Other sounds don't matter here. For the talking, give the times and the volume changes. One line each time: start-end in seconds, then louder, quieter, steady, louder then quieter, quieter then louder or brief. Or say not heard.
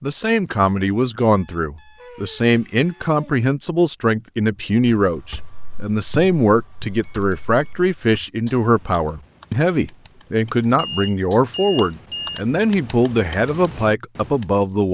0.0-14.8 steady.